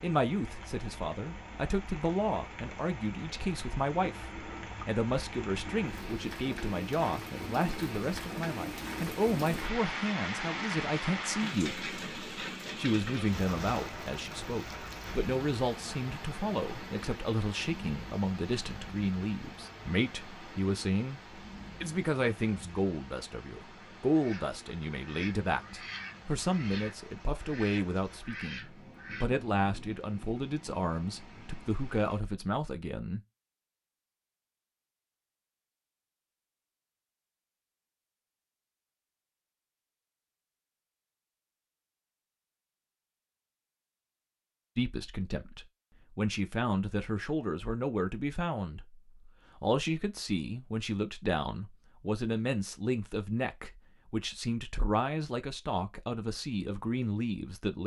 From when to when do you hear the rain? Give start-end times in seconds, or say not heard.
0.0-32.2.